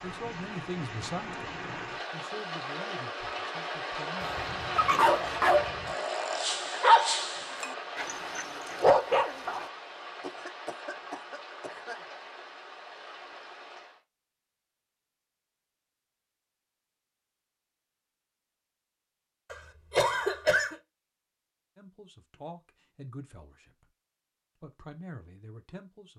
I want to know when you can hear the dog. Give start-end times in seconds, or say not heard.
4.8-9.7.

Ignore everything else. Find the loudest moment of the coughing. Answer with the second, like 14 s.
20 s.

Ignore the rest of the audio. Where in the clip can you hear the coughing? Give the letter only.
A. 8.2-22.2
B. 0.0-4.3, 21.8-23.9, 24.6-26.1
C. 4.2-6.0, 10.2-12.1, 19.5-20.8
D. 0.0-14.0
C.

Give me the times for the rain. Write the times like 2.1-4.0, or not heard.
0.0-14.0.